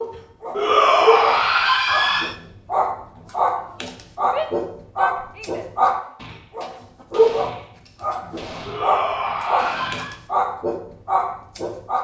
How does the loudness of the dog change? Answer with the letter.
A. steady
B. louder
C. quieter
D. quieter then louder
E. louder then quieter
A.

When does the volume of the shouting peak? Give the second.
1 s.